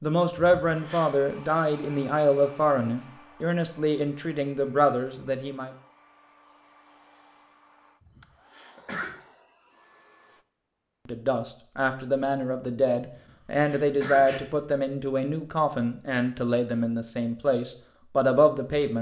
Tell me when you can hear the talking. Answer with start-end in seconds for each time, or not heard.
0.0-5.7, 11.1-18.9.